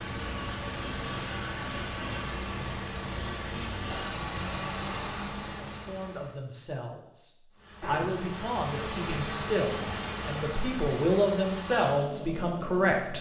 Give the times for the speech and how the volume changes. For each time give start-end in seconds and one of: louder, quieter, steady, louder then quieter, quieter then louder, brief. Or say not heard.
5.7-13.1 louder.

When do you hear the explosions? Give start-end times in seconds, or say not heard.
7.8-8.3.